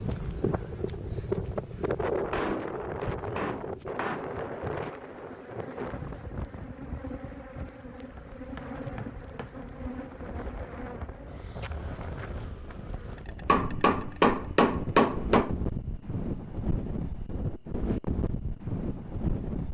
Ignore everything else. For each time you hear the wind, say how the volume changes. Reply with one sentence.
You can hear the wind from 0.0 to 19.6 s, getting quieter then louder.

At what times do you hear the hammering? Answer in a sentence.
The hammering can be heard from 2.3 to 4.3 s, from 8.2 to 9.5 s and from 13.4 to 15.6 s.